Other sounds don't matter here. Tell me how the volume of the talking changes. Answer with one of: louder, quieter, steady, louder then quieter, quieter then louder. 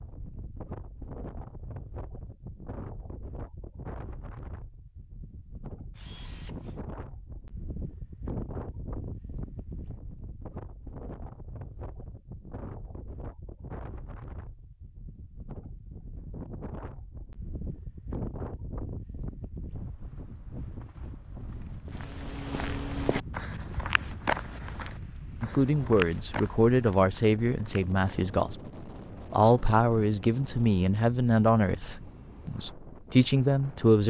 steady.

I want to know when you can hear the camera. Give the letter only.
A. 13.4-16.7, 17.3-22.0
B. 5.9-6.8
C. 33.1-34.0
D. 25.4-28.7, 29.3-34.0
B.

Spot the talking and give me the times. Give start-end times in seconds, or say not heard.
25.4-28.7, 29.3-34.0.